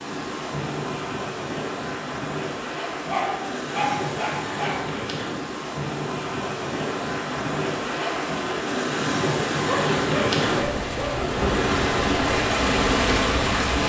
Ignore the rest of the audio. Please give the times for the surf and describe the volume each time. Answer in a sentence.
You can hear the surf from 0.0 to 13.8 s, getting louder.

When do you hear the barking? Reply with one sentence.
You can hear the barking from 3.0 to 5.0 s and from 9.7 to 11.2 s.